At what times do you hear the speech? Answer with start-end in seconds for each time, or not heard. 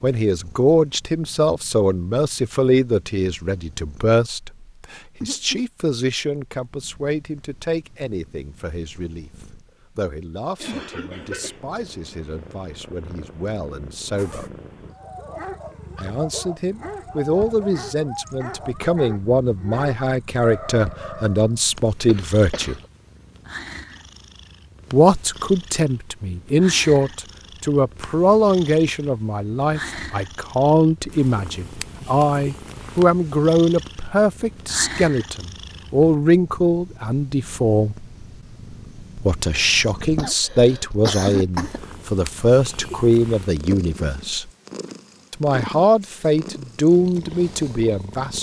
0.0-14.4, 15.9-22.8, 24.9-38.0, 39.1-44.5, 45.3-48.3.